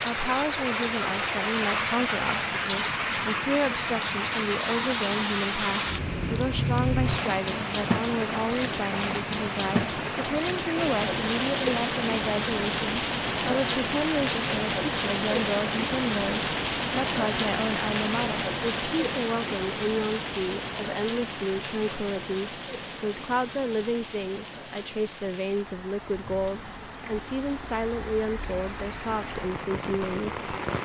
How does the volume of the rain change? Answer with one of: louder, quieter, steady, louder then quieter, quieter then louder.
quieter.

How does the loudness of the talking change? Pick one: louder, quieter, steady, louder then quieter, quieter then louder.
steady.